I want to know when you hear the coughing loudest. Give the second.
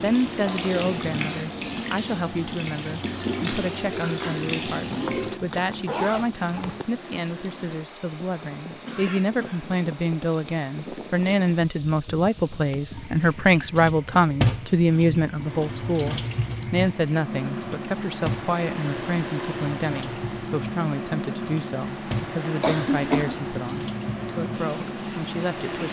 23 s.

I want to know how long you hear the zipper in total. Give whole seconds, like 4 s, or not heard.
2 s.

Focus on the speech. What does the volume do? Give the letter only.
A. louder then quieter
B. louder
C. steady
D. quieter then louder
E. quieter
A.